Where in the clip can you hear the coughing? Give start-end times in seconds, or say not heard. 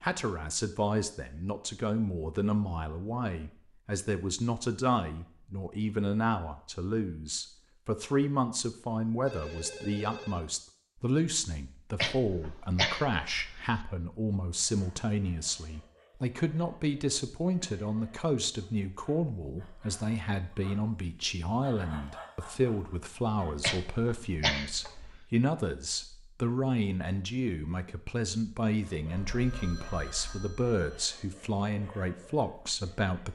11.9-13.8, 23.6-25.2.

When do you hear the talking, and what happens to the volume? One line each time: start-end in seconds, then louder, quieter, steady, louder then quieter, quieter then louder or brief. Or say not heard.
0.0-33.3 steady.